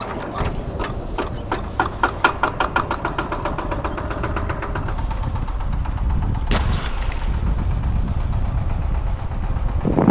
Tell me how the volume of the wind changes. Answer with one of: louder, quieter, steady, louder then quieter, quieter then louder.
louder.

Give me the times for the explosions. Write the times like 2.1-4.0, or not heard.
6.5-7.4.